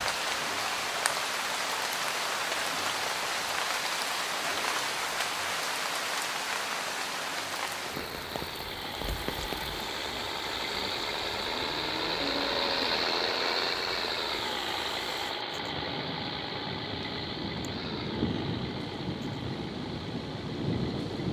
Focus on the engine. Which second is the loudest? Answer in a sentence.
The loudest moment of the engine is at 13 seconds.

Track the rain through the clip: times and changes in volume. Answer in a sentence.
You can hear the rain from 0.0 to 21.2 s, getting quieter then louder.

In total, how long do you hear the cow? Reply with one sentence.
The cow can be heard for 2 seconds in total.